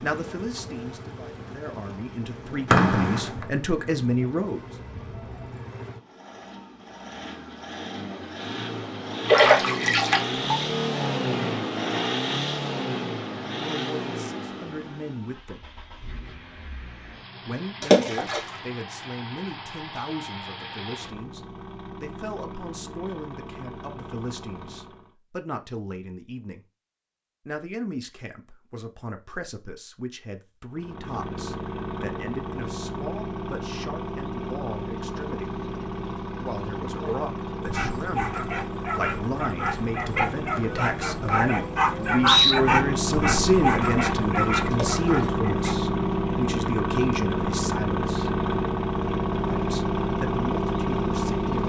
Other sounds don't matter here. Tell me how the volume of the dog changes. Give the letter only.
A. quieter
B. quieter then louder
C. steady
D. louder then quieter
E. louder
D.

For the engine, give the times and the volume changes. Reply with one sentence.
You can hear the engine from 0.0 to 25.1 s, getting louder then quieter; and from 30.7 to 51.6 s, getting louder.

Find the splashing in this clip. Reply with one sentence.
The splashing can be heard from 9.2 to 10.7 s, from 17.8 to 18.4 s and from 44.7 to 45.3 s.